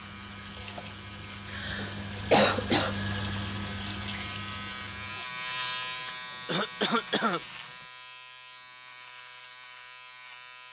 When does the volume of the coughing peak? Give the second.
2 s.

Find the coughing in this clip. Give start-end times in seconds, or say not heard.
1.5-3.4, 6.0-7.4.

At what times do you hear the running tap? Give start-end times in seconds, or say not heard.
0.0-7.9.